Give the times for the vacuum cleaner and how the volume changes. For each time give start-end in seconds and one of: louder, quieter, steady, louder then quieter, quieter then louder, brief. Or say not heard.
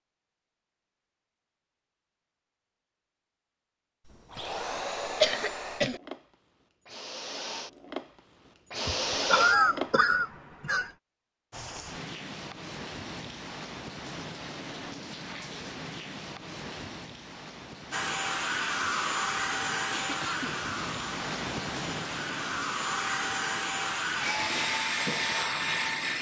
4.1-10.0 quieter then louder
17.9-26.1 quieter then louder.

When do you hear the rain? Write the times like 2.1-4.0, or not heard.
11.5-26.1.